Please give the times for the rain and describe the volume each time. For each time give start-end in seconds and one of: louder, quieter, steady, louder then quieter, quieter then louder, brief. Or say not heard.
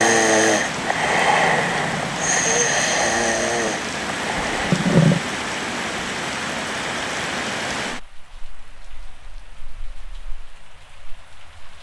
0.0-11.7 quieter.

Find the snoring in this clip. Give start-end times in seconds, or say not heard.
0.0-5.2.